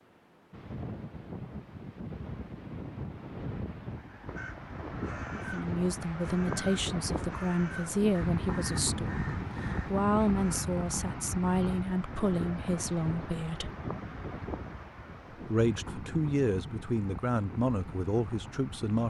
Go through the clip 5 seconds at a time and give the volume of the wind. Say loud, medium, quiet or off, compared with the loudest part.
medium, loud, loud, medium.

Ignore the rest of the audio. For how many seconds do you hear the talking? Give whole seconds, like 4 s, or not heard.
12 s.